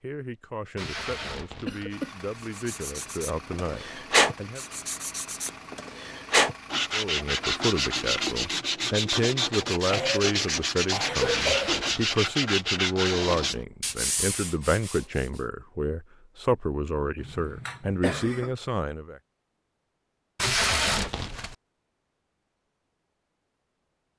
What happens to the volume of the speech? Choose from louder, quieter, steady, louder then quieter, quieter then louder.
louder.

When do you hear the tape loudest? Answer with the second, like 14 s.
21 s.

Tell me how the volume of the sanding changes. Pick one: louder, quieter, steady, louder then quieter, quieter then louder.
steady.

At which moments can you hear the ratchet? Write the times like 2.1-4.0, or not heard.
not heard.